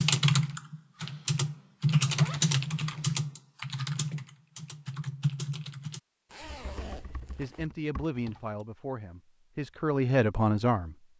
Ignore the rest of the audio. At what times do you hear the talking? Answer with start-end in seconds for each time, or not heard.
6.7-10.9.